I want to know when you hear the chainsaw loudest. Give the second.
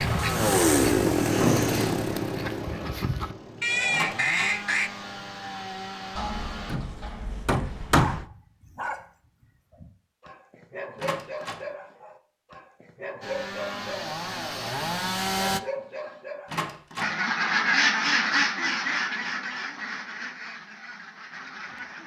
1 s.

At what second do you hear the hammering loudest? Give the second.
8 s.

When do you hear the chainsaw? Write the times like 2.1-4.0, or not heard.
0.0-6.8, 13.2-15.6.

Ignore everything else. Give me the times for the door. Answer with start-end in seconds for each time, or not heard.
3.9-4.6, 10.9-11.7, 16.4-17.1.